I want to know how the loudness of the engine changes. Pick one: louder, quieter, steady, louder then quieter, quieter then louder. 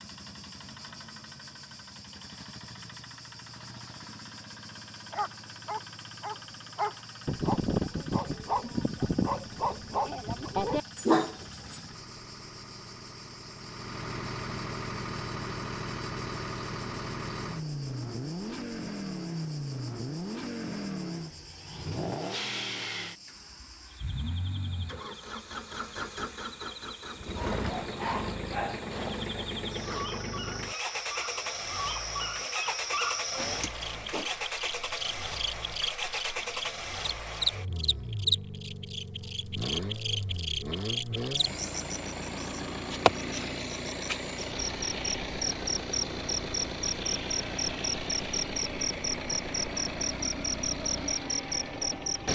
louder.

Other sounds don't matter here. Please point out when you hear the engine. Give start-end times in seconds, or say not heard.
0.0-52.3.